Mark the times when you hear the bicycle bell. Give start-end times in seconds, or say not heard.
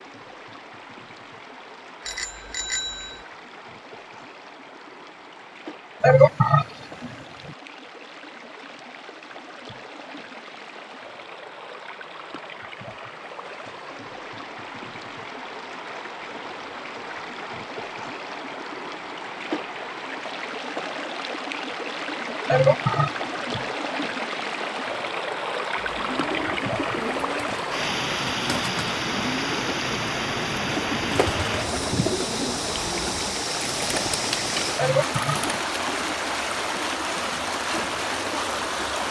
2.0-3.2.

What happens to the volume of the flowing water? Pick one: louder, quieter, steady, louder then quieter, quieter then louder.
louder.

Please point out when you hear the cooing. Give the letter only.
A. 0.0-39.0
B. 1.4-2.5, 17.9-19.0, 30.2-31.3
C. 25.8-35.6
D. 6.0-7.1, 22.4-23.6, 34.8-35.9
C.